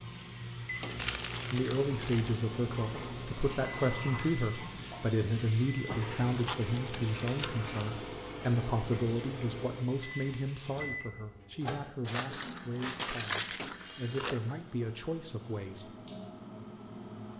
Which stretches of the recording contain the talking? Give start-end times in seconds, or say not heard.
1.5-15.8.